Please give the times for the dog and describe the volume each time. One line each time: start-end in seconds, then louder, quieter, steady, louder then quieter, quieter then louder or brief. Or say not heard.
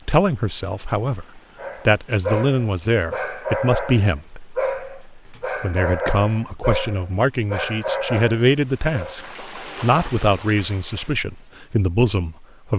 1.6-9.2 steady.